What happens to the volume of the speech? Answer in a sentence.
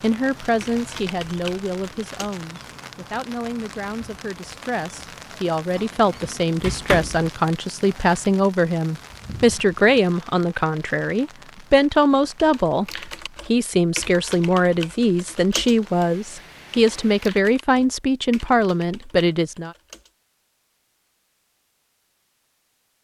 The loudness of the speech goes up.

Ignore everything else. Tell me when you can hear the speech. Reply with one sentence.
The speech can be heard from 0.0 to 19.8 s.